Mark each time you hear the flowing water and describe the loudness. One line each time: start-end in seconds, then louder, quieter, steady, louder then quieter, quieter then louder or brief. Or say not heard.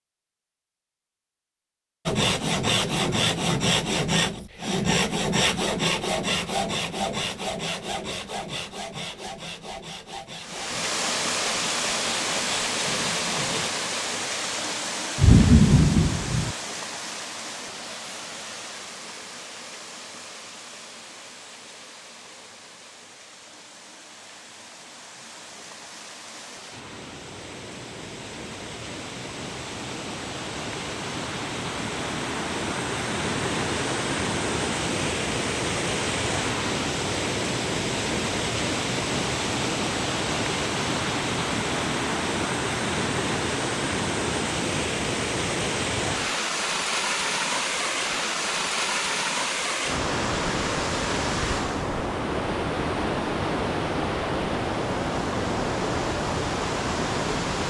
10.4-57.6 quieter then louder.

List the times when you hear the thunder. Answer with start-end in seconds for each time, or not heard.
15.2-16.6.